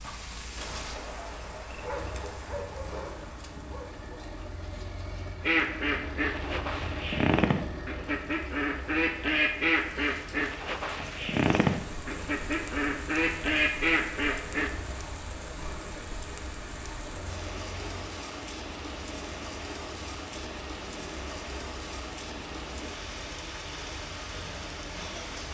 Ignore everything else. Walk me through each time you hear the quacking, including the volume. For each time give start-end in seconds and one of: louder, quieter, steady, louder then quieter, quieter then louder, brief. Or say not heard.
5.4-14.7 steady.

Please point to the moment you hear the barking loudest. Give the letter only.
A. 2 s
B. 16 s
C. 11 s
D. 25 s
A.